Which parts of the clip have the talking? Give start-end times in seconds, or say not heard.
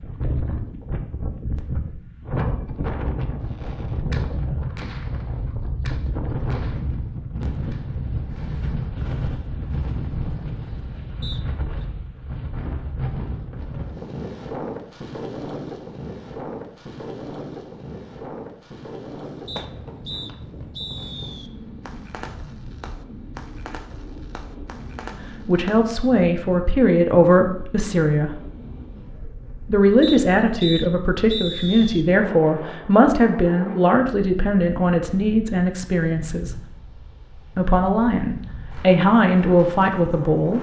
25.4-28.3, 29.6-36.6, 37.5-40.5.